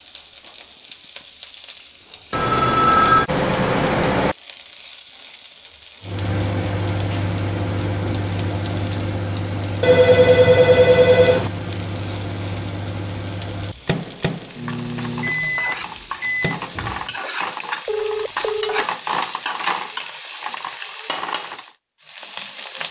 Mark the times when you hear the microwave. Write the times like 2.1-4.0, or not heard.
6.0-17.1.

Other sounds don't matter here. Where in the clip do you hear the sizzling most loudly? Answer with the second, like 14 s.
19 s.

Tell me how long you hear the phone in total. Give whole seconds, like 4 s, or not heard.
5 s.